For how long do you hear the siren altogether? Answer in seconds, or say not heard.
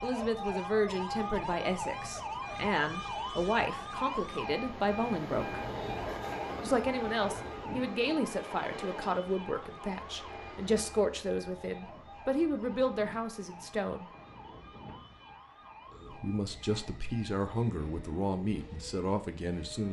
20 s.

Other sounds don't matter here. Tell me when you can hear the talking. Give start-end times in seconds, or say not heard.
0.0-5.6, 6.6-14.1, 16.1-19.8.